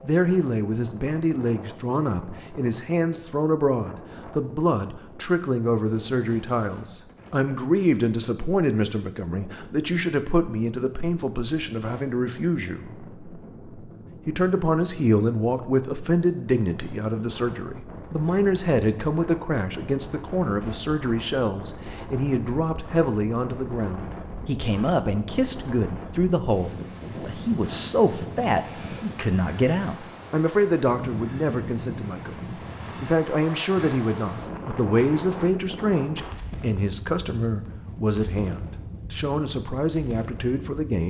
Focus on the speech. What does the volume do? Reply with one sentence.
The loudness of the speech stays about the same.